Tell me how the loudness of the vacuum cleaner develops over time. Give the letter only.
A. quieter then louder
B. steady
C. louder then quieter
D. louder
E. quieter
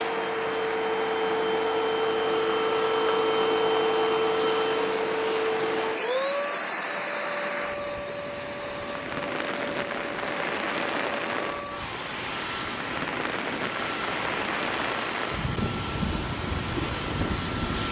E.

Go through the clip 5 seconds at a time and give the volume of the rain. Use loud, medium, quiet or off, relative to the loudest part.
medium, loud, loud, loud.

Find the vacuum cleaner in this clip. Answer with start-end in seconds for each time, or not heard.
0.0-17.8.